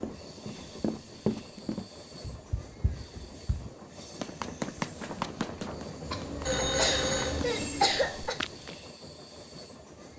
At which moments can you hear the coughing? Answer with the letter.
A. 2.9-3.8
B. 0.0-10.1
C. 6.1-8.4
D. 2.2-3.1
C.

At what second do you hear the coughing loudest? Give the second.
8 s.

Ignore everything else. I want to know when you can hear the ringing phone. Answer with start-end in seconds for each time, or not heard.
6.5-7.4.